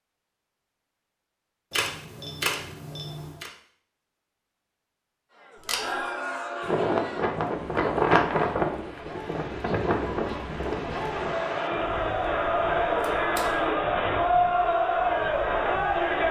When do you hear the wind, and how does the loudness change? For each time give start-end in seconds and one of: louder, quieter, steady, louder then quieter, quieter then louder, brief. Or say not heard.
6.6-16.2 quieter.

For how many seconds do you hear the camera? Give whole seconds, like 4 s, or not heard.
3 s.